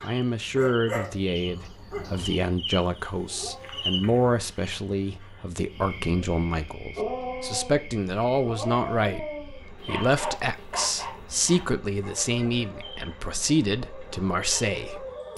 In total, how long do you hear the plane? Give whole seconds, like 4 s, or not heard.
not heard.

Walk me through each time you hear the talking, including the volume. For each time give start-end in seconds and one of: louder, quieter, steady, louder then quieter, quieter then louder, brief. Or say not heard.
0.0-15.3 steady.